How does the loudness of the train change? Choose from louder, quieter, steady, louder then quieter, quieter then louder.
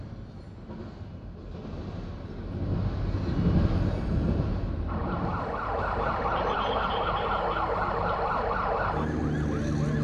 louder then quieter.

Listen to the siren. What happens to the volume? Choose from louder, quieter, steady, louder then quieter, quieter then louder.
steady.